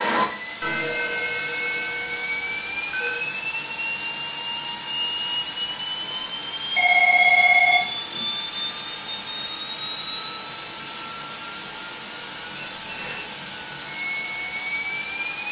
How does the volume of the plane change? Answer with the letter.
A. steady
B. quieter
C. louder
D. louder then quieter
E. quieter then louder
A.